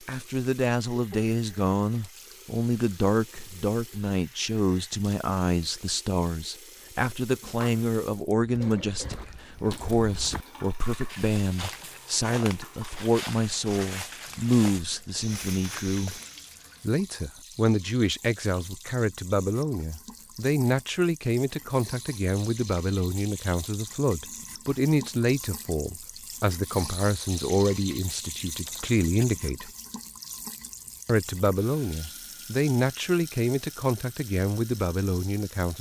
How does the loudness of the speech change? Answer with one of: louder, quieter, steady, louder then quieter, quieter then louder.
steady.